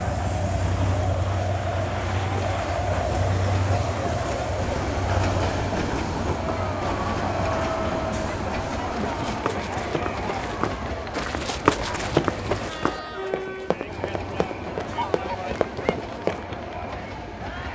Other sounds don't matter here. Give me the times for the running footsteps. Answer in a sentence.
The running footsteps can be heard from 4.6 to 16.4 s.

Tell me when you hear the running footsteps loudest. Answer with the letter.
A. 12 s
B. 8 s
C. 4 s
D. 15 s
A.